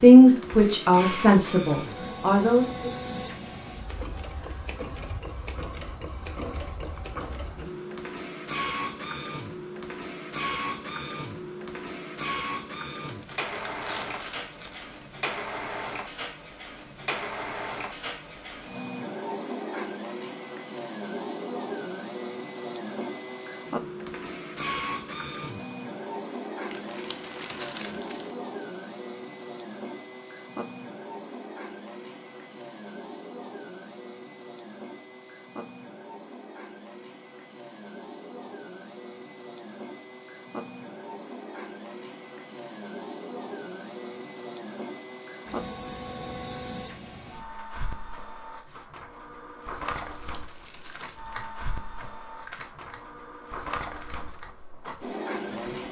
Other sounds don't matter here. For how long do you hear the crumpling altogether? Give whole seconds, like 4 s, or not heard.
5 s.